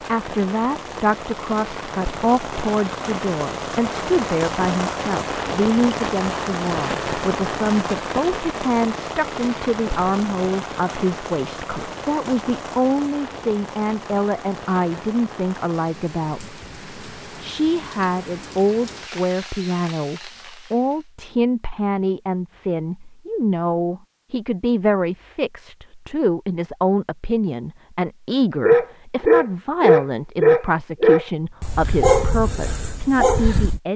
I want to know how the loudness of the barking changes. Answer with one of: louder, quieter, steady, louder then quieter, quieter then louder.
quieter.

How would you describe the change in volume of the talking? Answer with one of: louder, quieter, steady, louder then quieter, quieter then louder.
steady.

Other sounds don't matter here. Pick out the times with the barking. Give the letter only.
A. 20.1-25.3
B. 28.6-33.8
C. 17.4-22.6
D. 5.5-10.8
B.